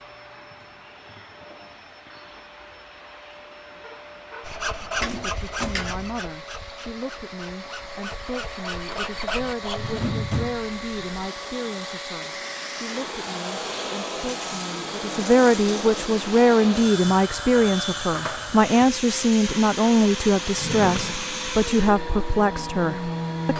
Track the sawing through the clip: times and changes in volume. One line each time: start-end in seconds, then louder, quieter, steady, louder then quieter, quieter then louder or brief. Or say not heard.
4.4-10.0 quieter then louder.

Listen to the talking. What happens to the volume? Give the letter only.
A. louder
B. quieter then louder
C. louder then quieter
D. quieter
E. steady
A.